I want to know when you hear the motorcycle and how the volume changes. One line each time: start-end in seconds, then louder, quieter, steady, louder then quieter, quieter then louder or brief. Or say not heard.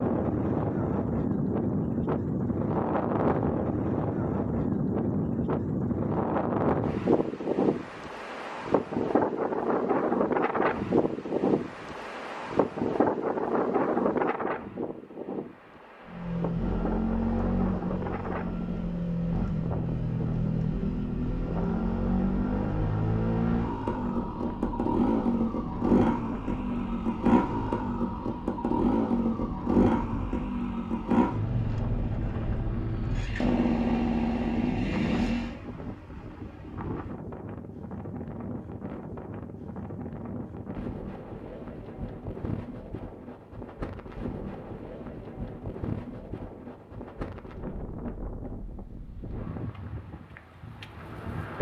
16.0-35.5 steady.